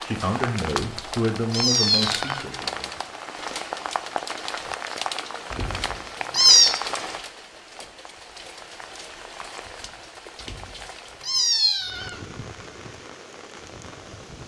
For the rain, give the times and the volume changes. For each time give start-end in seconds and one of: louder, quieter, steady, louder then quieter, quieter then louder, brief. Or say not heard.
0.0-14.4 quieter.